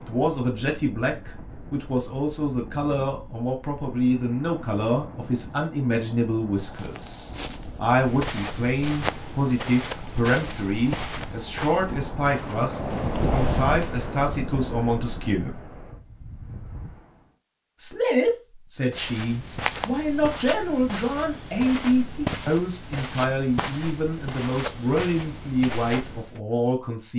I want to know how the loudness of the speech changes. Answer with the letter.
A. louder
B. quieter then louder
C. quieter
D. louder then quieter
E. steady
E.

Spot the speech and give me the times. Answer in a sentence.
The speech can be heard from 0.0 to 15.6 s and from 17.8 to 27.1 s.